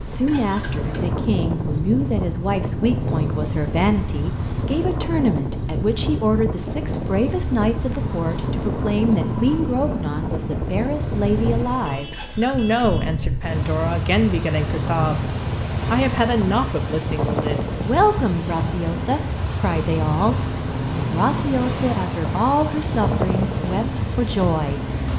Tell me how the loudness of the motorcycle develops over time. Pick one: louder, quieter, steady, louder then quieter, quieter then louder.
steady.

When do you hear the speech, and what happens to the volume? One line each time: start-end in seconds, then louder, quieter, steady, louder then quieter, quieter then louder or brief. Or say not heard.
0.1-24.9 steady.